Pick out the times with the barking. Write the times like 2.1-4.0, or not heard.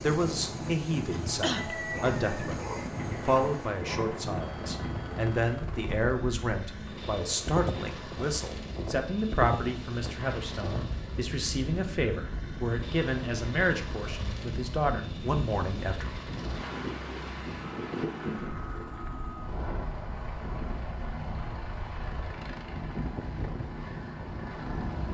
1.6-4.2.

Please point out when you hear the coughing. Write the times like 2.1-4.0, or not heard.
1.1-1.8.